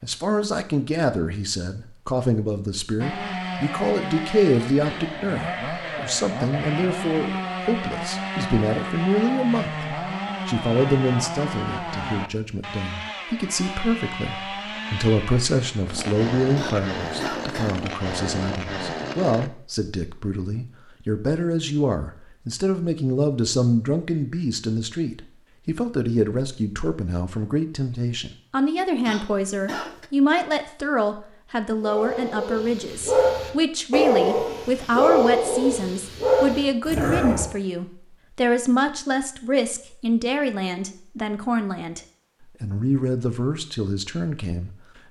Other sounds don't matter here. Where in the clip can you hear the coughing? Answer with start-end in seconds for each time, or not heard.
16.6-17.9, 29.1-30.1.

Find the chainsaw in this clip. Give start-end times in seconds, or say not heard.
3.0-19.5.